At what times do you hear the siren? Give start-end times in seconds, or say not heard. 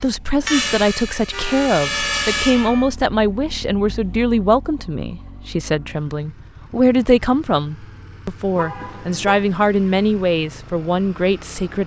0.0-2.9.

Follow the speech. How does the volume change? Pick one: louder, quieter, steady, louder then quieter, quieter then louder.
steady.